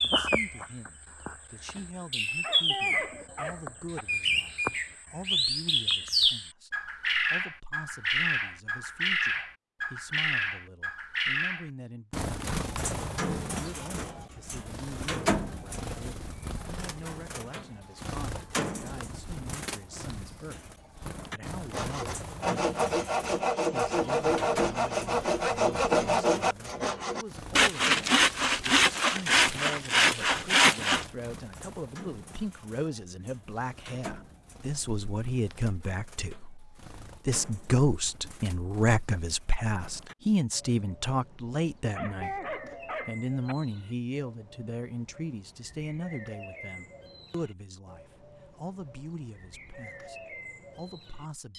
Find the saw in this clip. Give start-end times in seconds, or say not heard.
21.7-31.1.